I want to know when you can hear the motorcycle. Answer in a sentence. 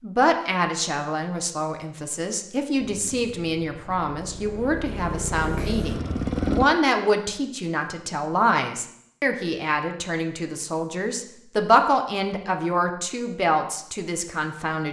You can hear the motorcycle from 2.8 to 6.7 s.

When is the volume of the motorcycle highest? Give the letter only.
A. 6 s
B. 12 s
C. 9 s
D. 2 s
A.